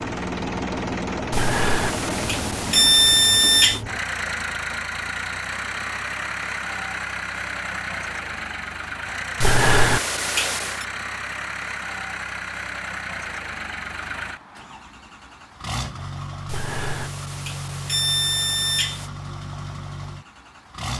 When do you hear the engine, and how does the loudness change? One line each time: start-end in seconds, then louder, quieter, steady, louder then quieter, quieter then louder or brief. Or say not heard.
0.0-20.9 quieter.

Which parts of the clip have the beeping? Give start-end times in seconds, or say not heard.
1.3-3.8, 9.4-10.8, 16.4-19.1.